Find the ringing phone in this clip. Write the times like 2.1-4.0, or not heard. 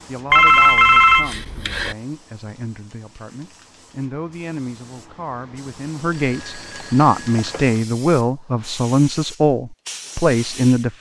0.3-1.9, 6.0-7.7.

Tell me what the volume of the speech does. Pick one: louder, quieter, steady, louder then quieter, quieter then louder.
louder.